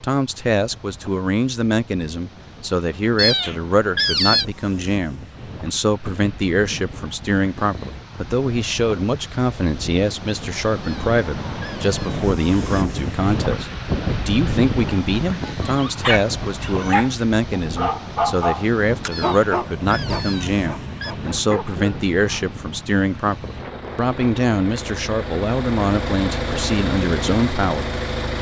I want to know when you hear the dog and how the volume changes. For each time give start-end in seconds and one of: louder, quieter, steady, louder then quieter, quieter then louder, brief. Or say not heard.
15.6-22.6 quieter.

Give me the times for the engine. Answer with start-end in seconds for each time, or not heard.
19.8-28.3.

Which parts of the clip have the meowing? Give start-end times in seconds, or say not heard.
3.1-4.5, 10.8-12.8, 19.1-21.1.